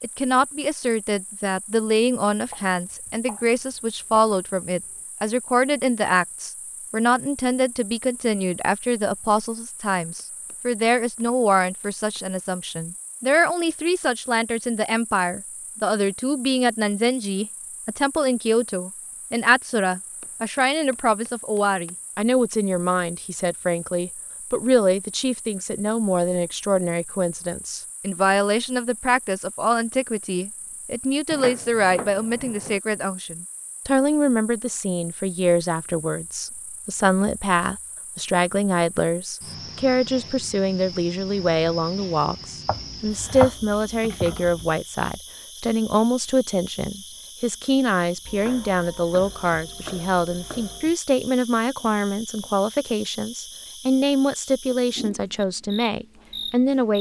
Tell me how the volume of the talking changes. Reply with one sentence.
The loudness of the talking stays about the same.